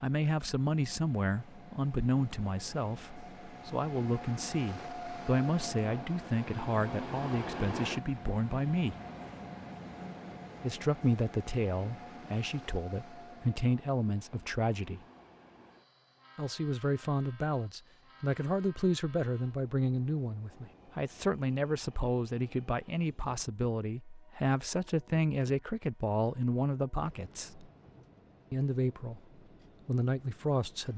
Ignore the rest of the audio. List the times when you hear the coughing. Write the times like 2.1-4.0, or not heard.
not heard.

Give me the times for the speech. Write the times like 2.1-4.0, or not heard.
0.0-8.9, 10.6-15.0, 16.4-27.6, 28.5-29.2, 29.9-30.9.